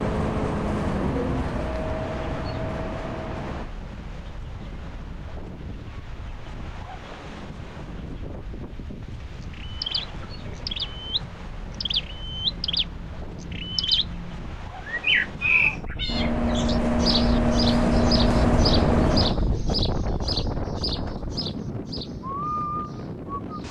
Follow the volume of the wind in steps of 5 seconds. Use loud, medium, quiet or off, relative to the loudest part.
quiet, quiet, quiet, loud, medium.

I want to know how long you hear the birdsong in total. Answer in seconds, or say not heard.
14 s.